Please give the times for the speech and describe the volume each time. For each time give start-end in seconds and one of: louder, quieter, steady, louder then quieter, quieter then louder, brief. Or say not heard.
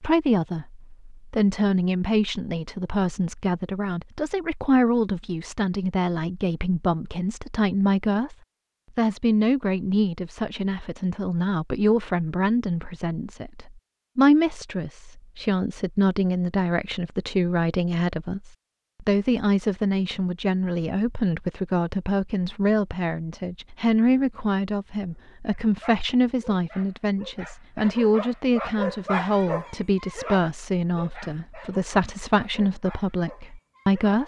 0.0-8.3 steady
8.9-34.2 steady.